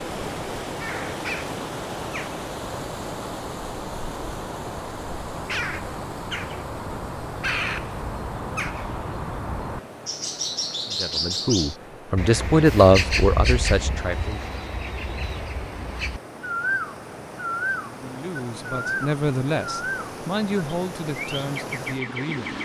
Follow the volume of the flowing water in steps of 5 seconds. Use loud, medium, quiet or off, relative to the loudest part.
loud, medium, medium, medium, loud.